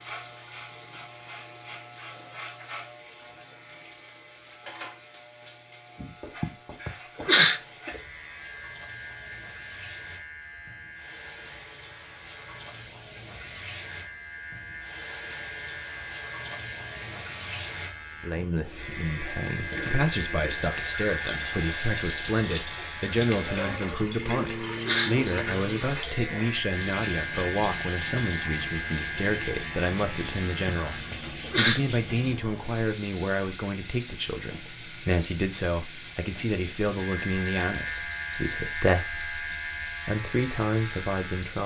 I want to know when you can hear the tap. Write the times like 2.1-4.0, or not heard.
0.0-41.6.